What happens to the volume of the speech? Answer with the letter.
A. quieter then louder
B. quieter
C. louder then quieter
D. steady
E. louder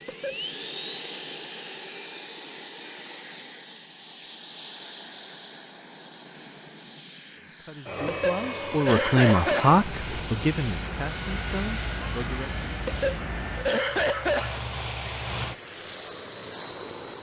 C.